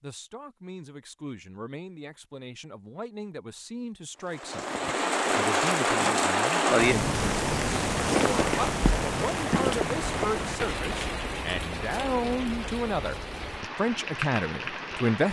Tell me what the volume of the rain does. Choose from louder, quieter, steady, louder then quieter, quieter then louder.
quieter.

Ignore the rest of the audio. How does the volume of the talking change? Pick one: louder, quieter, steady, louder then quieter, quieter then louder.
louder.